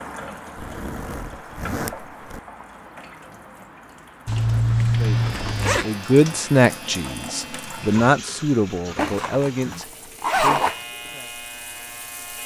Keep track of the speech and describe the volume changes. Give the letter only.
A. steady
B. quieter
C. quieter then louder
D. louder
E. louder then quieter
B.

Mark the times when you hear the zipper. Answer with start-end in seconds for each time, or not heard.
0.6-2.4, 4.2-5.8, 8.9-10.8.